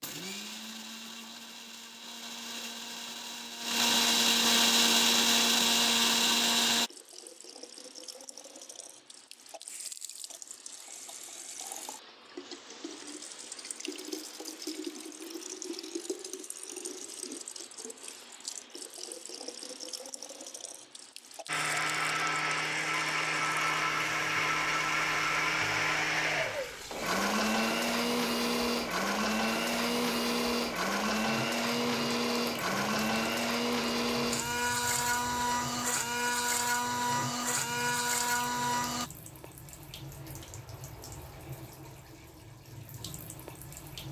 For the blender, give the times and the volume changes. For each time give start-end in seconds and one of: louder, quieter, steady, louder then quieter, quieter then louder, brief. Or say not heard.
0.0-6.9 louder
21.4-39.1 steady.